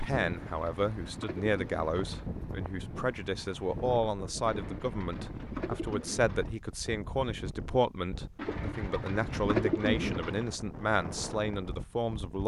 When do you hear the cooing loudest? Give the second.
10 s.